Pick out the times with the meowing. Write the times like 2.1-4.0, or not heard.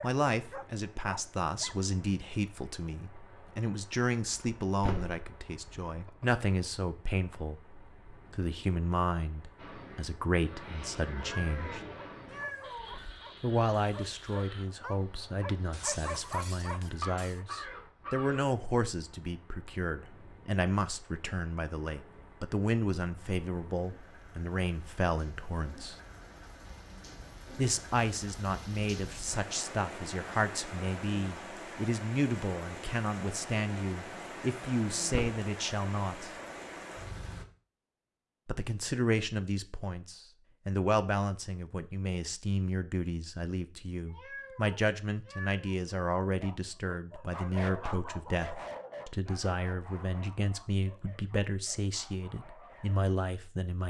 11.1-12.9, 44.0-45.8.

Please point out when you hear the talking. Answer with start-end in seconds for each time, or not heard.
0.0-11.8, 13.4-25.9, 27.6-36.4, 38.5-53.8.